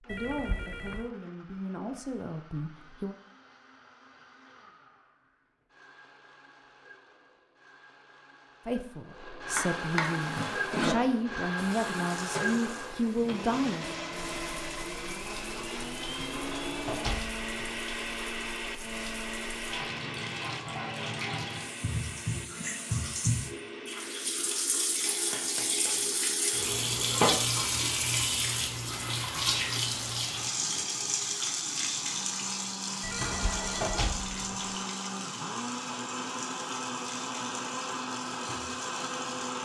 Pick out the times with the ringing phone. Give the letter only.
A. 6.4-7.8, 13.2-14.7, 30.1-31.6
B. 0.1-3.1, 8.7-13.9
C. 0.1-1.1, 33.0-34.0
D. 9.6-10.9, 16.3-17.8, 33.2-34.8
C.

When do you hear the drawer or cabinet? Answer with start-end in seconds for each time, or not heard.
9.6-10.9, 16.3-17.8, 33.2-34.8.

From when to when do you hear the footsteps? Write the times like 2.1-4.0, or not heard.
not heard.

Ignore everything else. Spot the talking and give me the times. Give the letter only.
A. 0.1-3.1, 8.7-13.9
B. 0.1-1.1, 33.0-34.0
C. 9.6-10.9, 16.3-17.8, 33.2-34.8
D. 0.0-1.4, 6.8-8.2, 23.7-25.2
A.